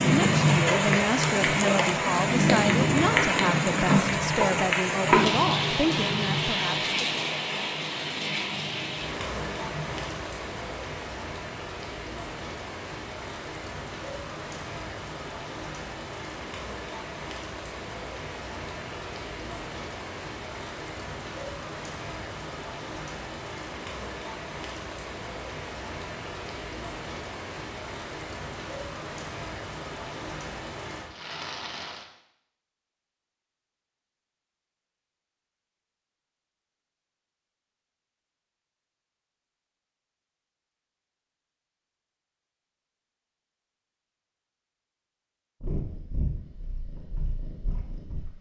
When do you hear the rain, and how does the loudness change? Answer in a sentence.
The rain can be heard from 0.0 to 32.1 s, getting quieter.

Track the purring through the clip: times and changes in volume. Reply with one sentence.
The purring can be heard from 0.0 to 10.2 s, getting quieter; and briefly from 45.6 to 48.3 s.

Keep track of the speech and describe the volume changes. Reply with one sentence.
The volume of the speech stays about the same.